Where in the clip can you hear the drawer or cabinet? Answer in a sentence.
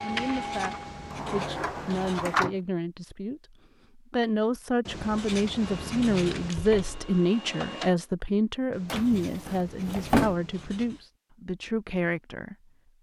You can hear the drawer or cabinet from 1.1 to 2.5 s, from 6.5 to 7.1 s and from 8.8 to 10.4 s.